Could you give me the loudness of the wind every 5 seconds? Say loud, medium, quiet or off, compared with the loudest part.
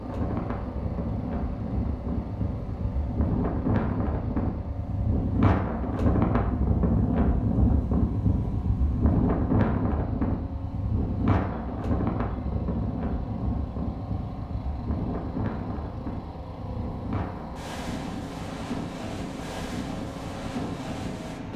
medium, loud, medium, medium, medium.